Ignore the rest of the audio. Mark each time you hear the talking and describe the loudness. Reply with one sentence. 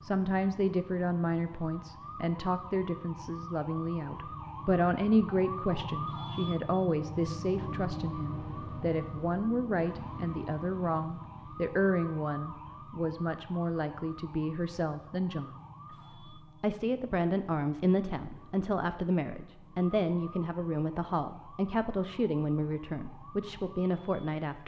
You can hear the talking from 0.0 to 24.6 s, at a steady volume.